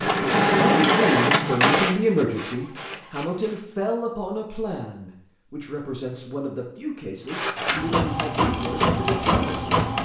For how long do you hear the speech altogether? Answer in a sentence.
You can hear the speech for 10 seconds altogether.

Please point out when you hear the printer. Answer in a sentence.
You can hear the printer from 0.0 to 3.6 s and from 7.2 to 10.0 s.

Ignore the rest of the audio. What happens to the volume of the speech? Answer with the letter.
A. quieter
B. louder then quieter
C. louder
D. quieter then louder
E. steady
A.